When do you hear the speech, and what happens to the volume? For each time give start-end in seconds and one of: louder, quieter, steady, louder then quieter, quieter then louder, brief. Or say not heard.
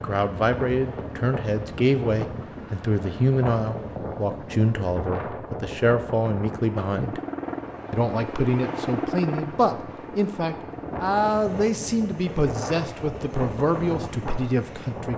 0.0-7.2 steady
7.9-15.1 steady.